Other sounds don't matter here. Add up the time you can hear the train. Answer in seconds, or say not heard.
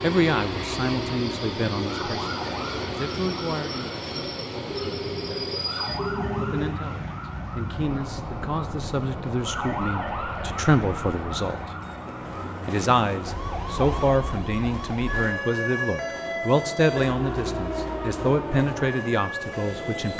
20 s.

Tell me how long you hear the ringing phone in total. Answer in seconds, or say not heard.
2 s.